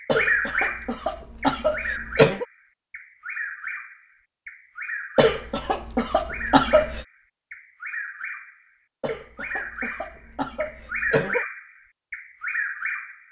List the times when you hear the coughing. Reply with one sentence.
The coughing can be heard from 0.1 to 2.5 s, from 5.2 to 7.0 s and from 9.0 to 11.4 s.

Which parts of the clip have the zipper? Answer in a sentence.
You can't hear the zipper here.